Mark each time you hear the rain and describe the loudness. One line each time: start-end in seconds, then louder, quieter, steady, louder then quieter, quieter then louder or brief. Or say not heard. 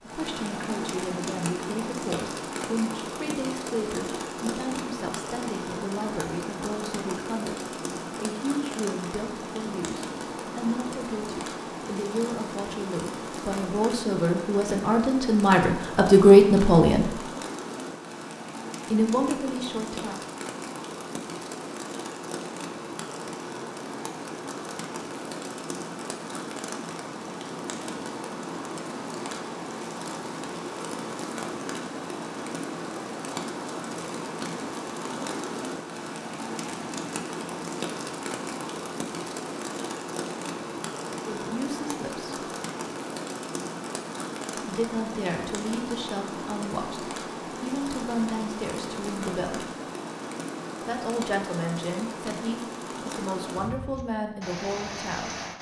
0.0-55.5 steady.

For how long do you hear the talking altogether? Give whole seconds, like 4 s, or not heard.
29 s.